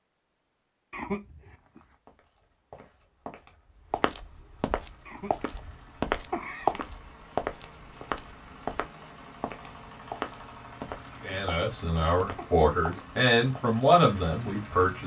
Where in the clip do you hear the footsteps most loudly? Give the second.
7 s.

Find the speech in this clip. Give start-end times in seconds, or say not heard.
11.2-15.0.